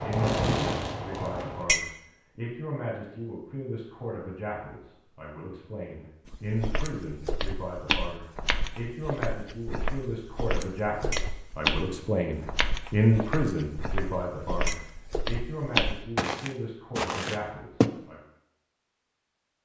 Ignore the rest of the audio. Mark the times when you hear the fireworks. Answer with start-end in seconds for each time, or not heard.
0.0-1.6.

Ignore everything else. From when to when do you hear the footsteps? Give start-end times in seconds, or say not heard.
6.2-17.9.